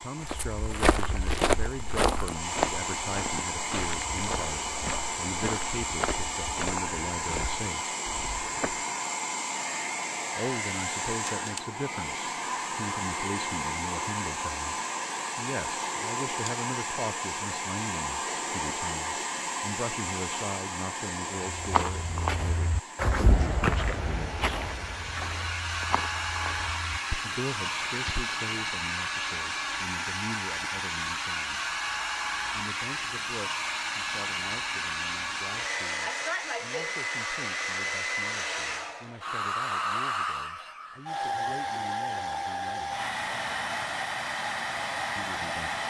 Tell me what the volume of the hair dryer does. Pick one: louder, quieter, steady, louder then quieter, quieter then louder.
steady.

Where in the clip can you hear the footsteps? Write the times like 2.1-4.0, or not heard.
0.2-8.8, 21.6-28.4.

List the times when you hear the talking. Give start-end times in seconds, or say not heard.
0.0-8.0, 10.3-14.8, 15.3-24.4, 27.2-31.8, 32.5-43.0, 45.1-45.8.